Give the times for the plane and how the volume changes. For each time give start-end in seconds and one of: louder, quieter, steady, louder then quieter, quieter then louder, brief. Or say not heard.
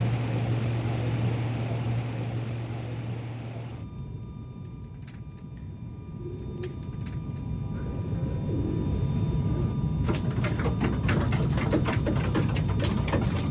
0.0-13.4 quieter then louder.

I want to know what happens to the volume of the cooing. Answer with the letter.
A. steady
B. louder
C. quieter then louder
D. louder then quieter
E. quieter
B.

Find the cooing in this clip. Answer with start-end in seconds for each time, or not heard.
4.6-13.4.